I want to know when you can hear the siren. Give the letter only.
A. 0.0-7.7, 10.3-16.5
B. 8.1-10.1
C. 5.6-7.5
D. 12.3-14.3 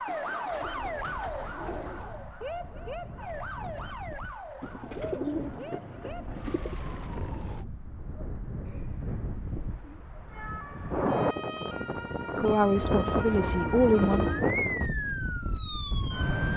A.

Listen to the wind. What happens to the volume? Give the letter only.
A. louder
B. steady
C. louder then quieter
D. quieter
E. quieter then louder
A.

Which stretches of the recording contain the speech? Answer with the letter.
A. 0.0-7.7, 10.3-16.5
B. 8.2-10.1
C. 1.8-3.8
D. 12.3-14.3
D.